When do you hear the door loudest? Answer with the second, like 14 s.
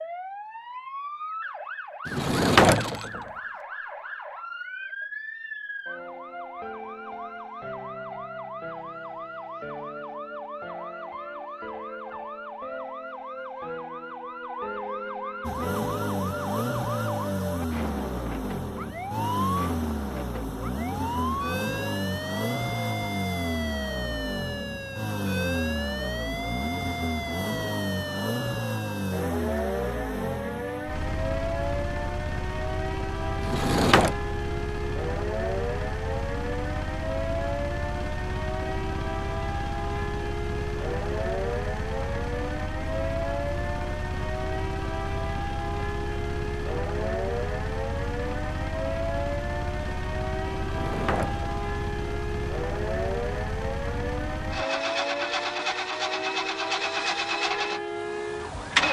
3 s.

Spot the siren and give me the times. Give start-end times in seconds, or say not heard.
0.0-58.8.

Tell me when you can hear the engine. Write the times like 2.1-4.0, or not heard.
15.4-58.8.